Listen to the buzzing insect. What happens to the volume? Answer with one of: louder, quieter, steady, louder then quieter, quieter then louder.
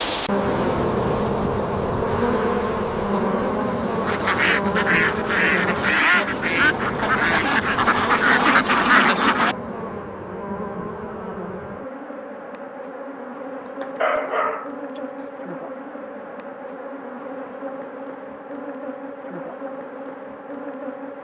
quieter.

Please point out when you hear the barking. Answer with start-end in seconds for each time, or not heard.
13.7-15.0.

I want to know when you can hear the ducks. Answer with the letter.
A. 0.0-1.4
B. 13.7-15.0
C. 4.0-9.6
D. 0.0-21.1
C.